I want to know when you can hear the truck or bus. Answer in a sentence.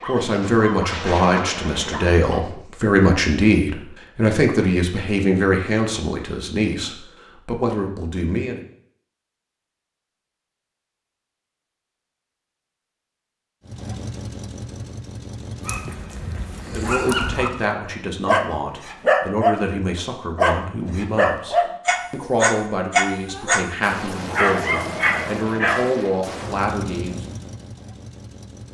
You can hear the truck or bus from 13.7 to 17.8 s and from 26.2 to 28.6 s.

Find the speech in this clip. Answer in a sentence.
The speech can be heard from 0.1 to 8.6 s and from 16.7 to 27.2 s.